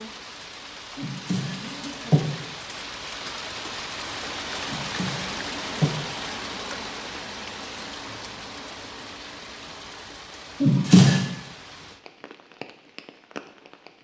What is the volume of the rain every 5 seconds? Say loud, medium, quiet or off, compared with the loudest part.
loud, loud, medium.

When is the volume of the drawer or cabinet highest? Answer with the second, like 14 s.
11 s.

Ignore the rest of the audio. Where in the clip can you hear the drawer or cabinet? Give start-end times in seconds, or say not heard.
0.9-2.2, 4.7-6.0, 10.6-11.2.